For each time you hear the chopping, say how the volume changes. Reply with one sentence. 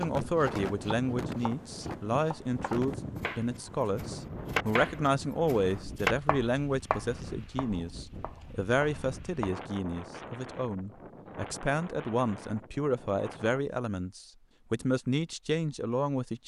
You can hear the chopping from 0.0 to 9.6 s, getting louder then quieter.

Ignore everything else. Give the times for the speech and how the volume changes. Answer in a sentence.
You can hear the speech from 0.0 to 16.4 s, at a steady volume.